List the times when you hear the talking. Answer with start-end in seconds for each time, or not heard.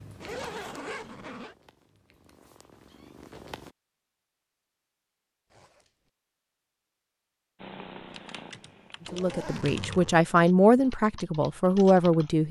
9.1-12.4.